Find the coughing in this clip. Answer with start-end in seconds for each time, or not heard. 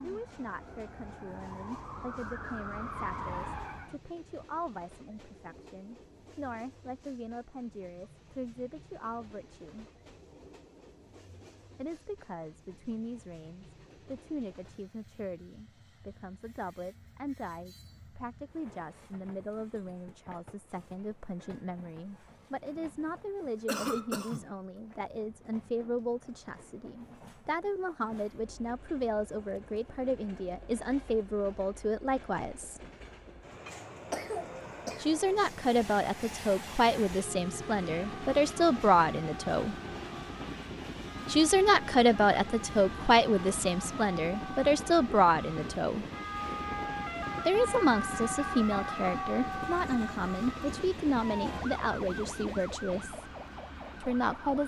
23.6-24.5, 34.1-35.1.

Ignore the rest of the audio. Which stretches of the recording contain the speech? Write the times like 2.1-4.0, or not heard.
0.0-9.8, 11.8-32.8, 35.0-39.8, 41.2-46.0, 47.5-53.2, 54.0-54.6.